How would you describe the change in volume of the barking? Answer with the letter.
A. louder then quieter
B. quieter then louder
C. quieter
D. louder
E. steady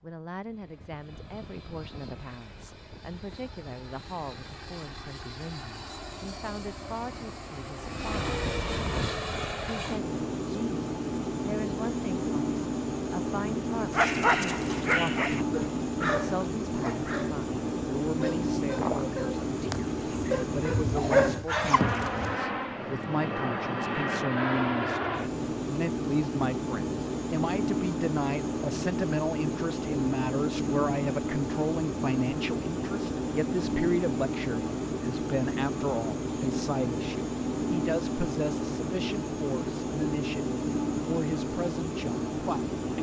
B.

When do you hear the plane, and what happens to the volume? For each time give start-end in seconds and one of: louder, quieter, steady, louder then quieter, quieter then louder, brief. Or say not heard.
0.0-42.9 louder.